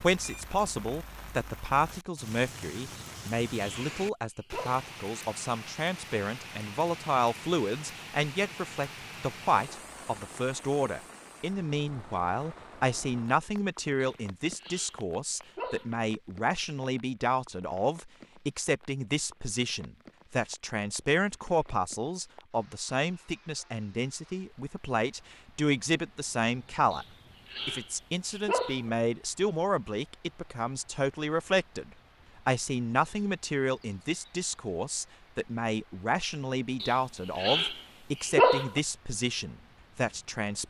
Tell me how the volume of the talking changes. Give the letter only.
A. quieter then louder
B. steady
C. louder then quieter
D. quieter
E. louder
B.